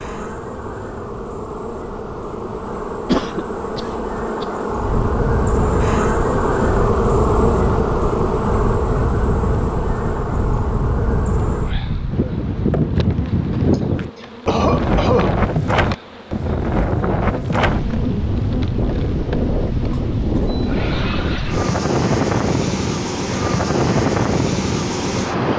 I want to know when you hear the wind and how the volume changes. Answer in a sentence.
You can hear the wind from 0.0 to 25.5 s, getting louder.